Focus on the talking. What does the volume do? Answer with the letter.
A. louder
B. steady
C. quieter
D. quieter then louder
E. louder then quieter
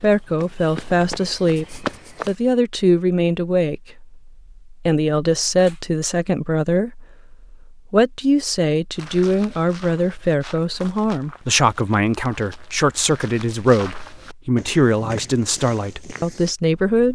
B.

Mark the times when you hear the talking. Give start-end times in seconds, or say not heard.
0.0-17.0.